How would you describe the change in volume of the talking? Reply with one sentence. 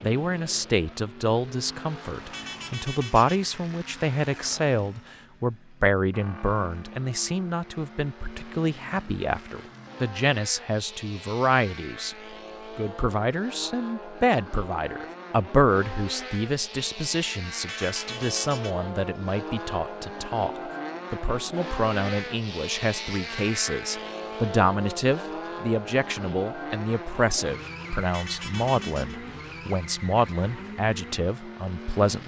The loudness of the talking stays about the same.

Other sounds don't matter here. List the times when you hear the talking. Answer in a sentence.
You can hear the talking from 0.0 to 12.2 s, from 12.8 to 20.5 s and from 21.1 to 32.2 s.